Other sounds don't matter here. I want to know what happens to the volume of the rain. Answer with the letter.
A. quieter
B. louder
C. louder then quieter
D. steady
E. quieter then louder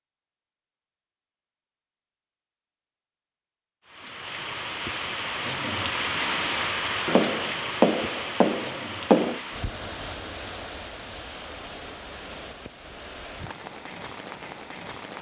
A.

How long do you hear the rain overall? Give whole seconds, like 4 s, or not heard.
11 s.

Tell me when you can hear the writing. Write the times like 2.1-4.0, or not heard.
7.0-9.4.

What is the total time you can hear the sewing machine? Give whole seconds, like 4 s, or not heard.
not heard.